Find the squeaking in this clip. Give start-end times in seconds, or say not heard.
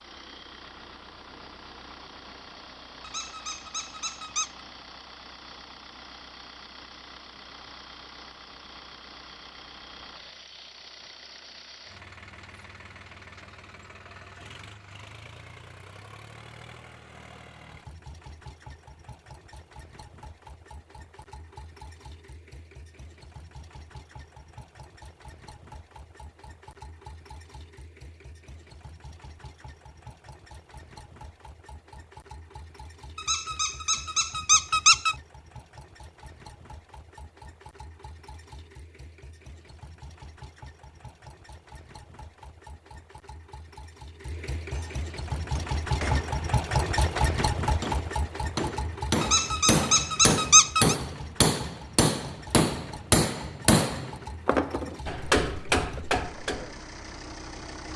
3.0-4.5, 33.1-35.1, 49.2-51.0.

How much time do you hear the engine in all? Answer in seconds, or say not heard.
58 s.